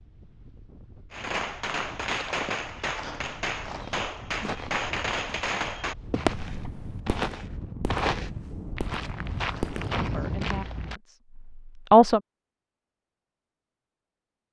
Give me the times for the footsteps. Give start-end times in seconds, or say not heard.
1.9-11.0.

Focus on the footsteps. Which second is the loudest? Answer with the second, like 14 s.
8 s.